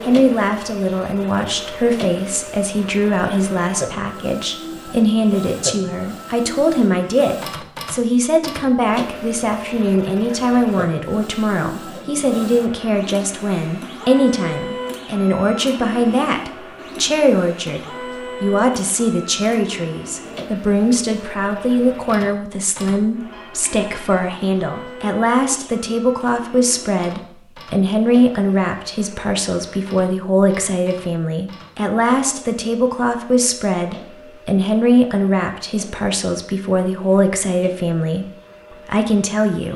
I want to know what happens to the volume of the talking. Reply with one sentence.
The volume of the talking stays about the same.